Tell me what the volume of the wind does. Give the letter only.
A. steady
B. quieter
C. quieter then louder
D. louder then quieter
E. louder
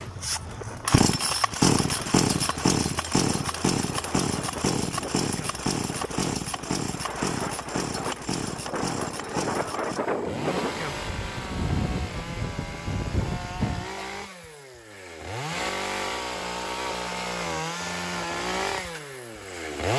E.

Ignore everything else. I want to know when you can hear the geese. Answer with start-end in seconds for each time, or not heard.
not heard.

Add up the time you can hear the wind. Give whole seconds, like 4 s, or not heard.
14 s.